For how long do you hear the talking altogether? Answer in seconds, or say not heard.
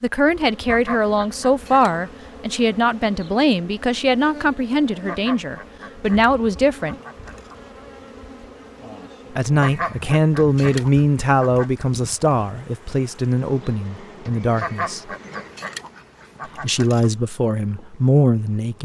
15 s.